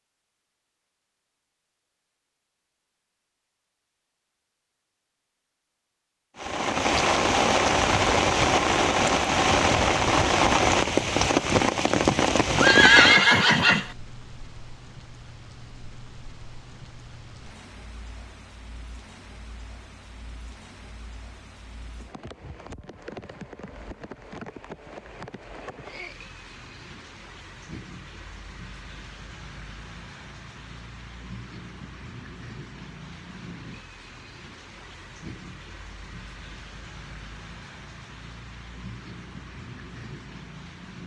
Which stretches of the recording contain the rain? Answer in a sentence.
You can hear the rain from 6.3 to 41.0 s.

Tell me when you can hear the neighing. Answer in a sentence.
You can hear the neighing from 12.6 to 13.9 s.